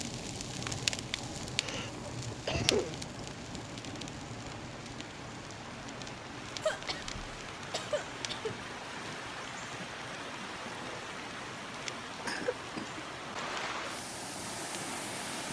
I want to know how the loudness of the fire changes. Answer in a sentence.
The volume of the fire goes down.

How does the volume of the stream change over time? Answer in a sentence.
The volume of the stream goes up.